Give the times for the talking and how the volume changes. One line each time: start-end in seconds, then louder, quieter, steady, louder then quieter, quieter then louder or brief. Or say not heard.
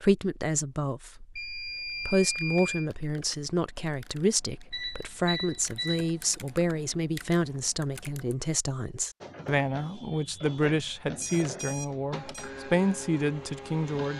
0.0-14.1 steady.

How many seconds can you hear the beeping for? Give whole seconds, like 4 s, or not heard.
4 s.